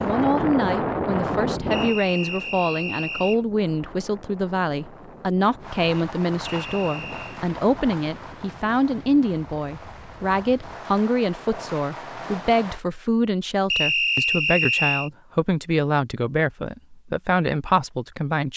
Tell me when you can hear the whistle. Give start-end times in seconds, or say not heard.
1.7-3.4, 6.5-7.4, 13.7-15.1.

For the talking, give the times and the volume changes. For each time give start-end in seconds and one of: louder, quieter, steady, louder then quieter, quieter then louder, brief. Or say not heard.
0.0-18.5 steady.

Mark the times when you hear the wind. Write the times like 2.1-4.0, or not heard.
0.0-10.8.